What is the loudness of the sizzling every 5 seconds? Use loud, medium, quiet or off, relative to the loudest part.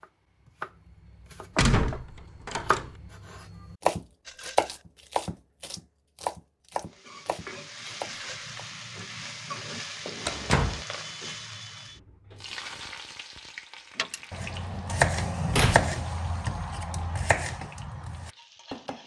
off, loud, loud, quiet.